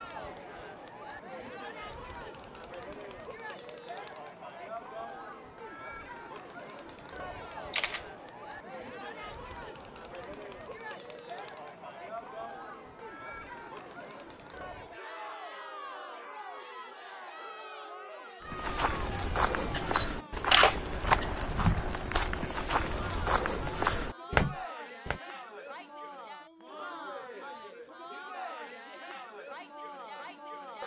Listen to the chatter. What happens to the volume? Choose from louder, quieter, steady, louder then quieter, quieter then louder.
steady.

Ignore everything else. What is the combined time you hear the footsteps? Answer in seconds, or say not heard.
7 s.